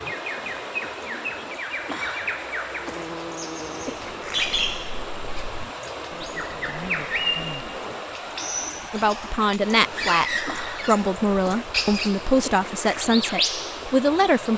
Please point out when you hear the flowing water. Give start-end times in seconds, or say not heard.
0.0-14.5.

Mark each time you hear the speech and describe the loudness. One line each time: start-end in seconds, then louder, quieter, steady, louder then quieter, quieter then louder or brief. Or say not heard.
8.9-14.5 steady.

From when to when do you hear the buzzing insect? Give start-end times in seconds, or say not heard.
2.7-8.2.